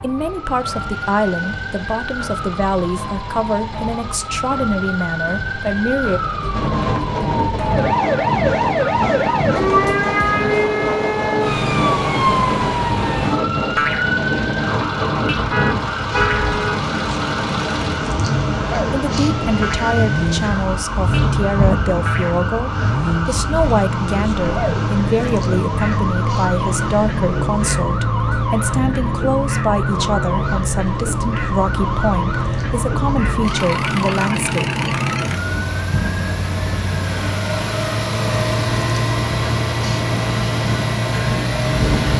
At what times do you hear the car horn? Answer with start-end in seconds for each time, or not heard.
15.3-16.8.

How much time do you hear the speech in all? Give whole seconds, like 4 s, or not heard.
22 s.